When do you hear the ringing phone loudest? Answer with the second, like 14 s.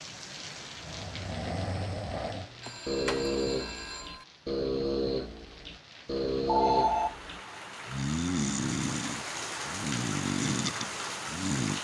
7 s.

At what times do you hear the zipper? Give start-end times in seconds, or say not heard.
not heard.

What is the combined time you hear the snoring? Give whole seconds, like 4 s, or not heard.
11 s.